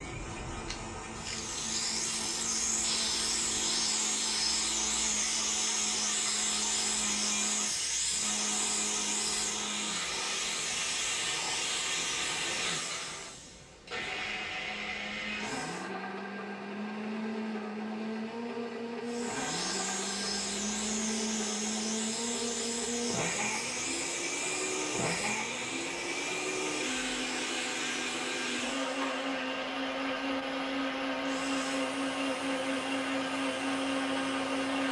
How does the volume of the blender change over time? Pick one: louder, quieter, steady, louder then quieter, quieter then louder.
louder.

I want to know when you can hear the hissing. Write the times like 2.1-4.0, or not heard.
0.0-15.9, 19.1-34.8.